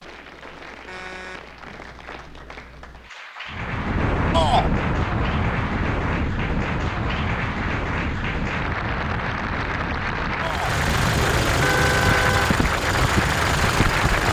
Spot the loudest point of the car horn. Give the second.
12 s.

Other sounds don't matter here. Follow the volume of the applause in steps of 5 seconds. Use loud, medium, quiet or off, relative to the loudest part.
quiet, medium, loud.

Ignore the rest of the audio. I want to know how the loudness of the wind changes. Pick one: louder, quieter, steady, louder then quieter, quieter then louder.
quieter.